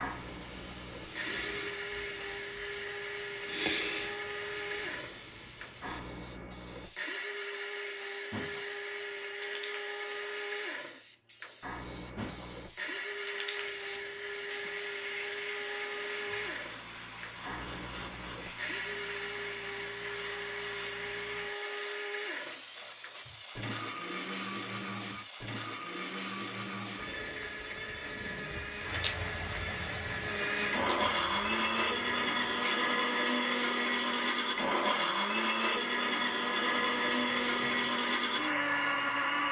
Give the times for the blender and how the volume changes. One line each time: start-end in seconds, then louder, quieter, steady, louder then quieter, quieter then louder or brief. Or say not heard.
0.0-39.4 louder.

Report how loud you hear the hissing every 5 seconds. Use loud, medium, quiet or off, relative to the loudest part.
loud, loud, loud, loud, loud, loud, medium, medium.